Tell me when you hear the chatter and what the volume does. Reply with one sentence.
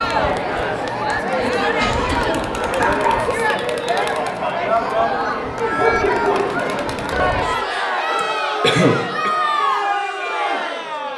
You can hear the chatter from 0.0 to 11.1 s, at a steady volume.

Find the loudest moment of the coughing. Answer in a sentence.
The volume of the coughing peaks at 9 seconds.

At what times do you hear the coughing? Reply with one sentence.
You can hear the coughing from 1.6 to 2.5 s and from 8.2 to 9.3 s.